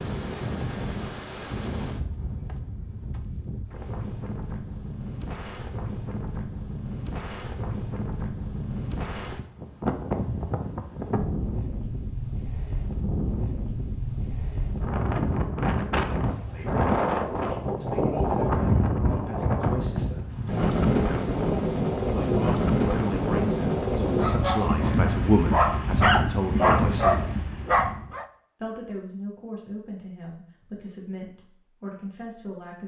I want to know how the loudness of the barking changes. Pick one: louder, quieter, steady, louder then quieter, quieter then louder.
louder.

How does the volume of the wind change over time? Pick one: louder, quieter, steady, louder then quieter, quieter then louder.
louder.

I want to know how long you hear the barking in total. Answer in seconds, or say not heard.
4 s.